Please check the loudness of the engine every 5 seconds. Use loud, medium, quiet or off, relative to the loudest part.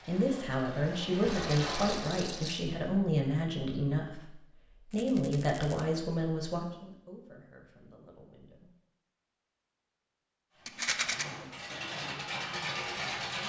loud, off, loud.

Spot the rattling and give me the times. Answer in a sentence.
The rattling can be heard from 1.2 to 2.6 s, from 4.9 to 5.8 s and from 10.7 to 11.2 s.